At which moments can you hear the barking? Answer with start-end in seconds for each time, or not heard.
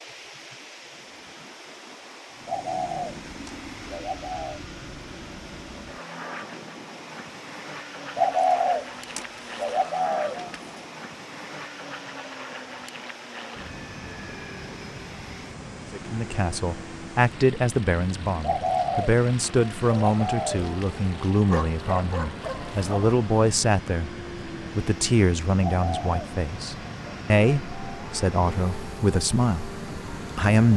21.4-23.1.